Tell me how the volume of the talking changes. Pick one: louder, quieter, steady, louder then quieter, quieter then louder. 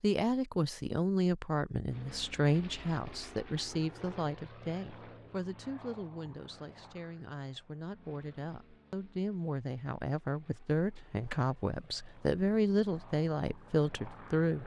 quieter then louder.